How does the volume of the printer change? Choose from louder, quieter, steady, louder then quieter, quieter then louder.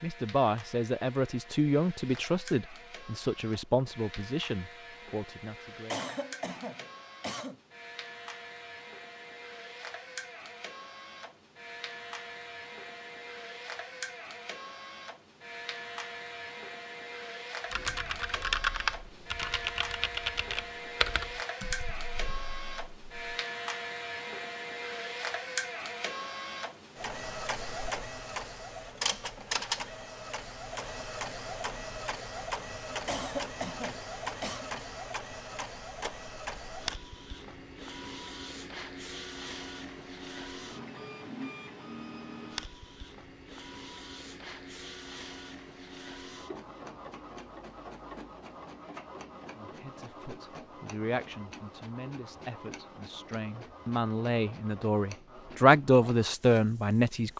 louder then quieter.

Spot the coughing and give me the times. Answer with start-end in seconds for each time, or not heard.
5.9-7.5, 33.0-34.6.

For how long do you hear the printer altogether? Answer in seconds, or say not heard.
57 s.